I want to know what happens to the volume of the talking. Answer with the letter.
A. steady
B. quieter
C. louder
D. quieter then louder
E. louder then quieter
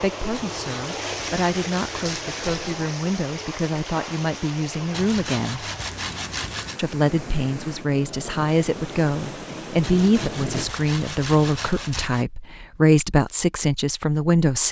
C.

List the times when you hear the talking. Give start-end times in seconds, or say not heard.
0.0-5.7, 6.8-14.6.